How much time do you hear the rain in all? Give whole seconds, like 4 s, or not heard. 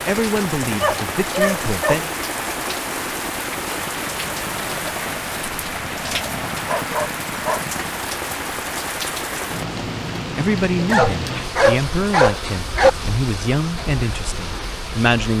15 s.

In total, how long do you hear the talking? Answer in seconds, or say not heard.
7 s.